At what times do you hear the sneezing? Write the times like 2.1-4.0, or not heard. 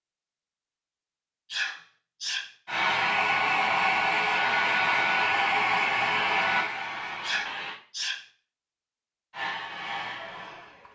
1.5-2.5, 7.2-8.2.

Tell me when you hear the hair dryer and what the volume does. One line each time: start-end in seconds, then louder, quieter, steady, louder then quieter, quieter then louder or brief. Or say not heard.
2.6-7.8 quieter
9.3-10.8 brief.